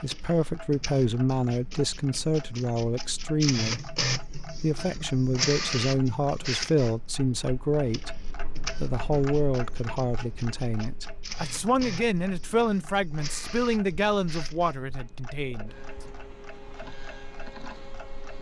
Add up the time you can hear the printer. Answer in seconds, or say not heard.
18 s.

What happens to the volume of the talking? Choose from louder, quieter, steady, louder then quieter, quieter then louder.
steady.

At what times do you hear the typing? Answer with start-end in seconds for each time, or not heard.
not heard.